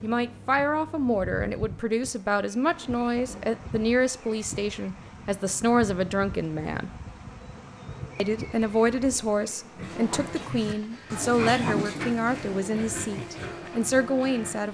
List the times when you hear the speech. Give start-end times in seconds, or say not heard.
0.0-6.9, 8.2-14.6.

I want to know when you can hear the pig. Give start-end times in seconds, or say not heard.
9.8-14.6.